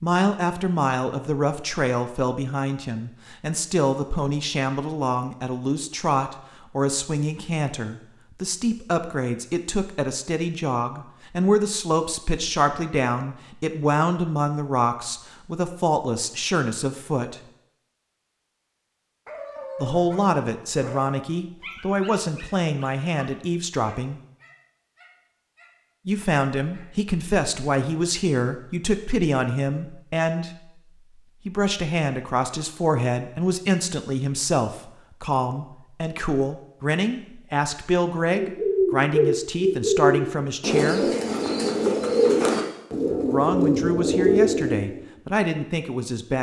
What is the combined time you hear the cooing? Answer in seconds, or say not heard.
7 s.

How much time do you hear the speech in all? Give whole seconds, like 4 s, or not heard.
39 s.